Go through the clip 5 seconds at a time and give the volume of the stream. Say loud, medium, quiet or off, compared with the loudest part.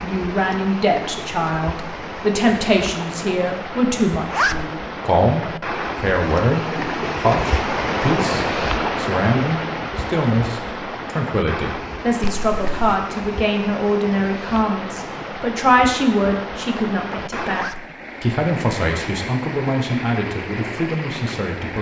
medium, loud, medium, medium, medium.